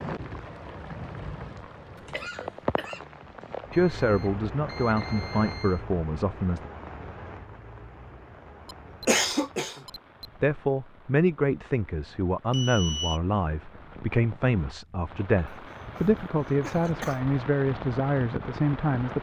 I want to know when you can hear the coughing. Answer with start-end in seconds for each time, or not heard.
1.9-3.0, 8.7-10.2, 15.5-17.3.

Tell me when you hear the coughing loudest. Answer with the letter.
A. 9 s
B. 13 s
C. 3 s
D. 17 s
A.